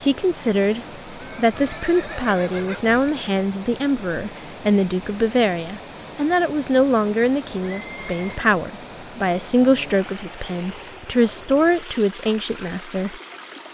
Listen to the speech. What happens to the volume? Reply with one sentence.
The volume of the speech stays about the same.